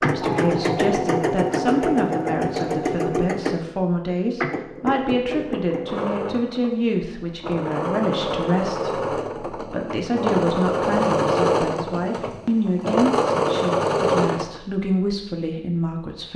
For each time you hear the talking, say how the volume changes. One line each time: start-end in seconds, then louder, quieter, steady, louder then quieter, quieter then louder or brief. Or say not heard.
0.0-16.3 steady.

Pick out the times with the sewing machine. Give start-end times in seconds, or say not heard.
0.0-14.6.